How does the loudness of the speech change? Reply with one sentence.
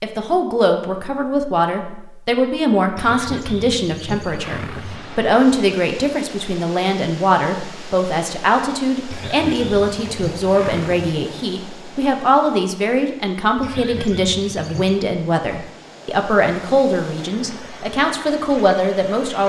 The loudness of the speech stays about the same.